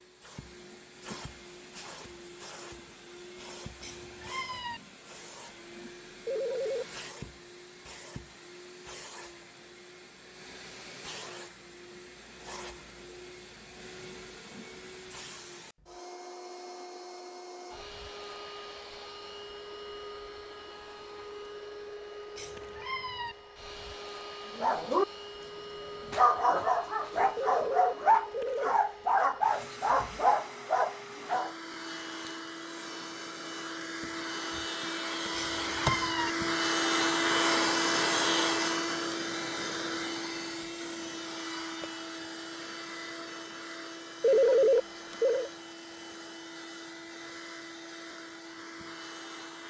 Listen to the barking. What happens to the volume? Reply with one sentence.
The loudness of the barking stays about the same.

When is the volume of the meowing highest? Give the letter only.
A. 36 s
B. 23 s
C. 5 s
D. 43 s
A.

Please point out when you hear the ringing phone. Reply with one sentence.
You can hear the ringing phone from 6.2 to 6.8 s, from 27.4 to 28.8 s and from 44.2 to 45.5 s.